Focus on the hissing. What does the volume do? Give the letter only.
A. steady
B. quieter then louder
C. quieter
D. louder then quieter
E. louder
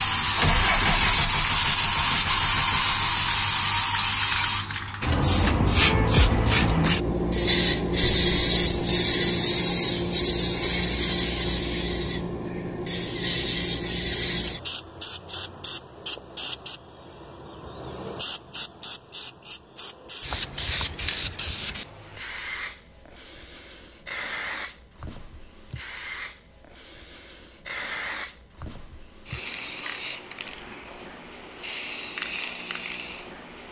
C.